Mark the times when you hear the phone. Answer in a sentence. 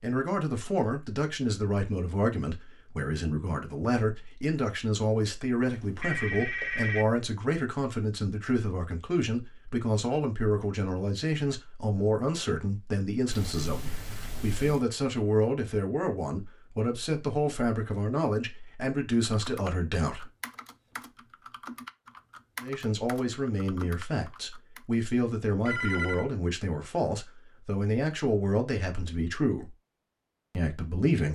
You can hear the phone from 5.7 to 7.1 s, from 13.3 to 14.8 s and from 25.6 to 26.2 s.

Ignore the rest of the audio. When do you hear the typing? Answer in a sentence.
You can hear the typing from 19.2 to 24.9 s.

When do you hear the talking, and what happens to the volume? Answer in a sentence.
You can hear the talking from 0.0 to 20.2 s, at a steady volume; from 22.6 to 29.7 s, at a steady volume; and briefly from 30.5 to 31.3 s.